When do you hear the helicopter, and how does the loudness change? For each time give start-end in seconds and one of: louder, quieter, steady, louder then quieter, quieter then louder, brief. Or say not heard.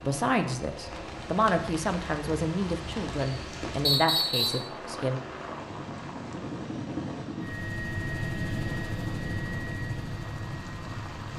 0.0-11.3 louder.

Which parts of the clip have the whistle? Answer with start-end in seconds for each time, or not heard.
3.9-4.7.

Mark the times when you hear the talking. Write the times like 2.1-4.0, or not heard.
0.0-5.2.